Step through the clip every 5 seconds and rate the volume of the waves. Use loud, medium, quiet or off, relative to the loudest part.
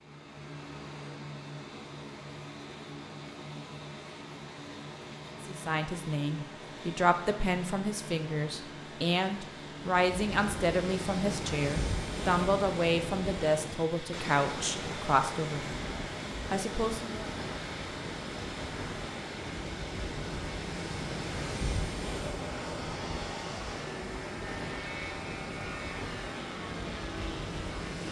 off, off, loud, loud, loud, loud.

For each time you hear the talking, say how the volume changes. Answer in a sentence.
The talking can be heard from 5.4 to 15.8 s, at a steady volume; and briefly from 16.5 to 17.2 s.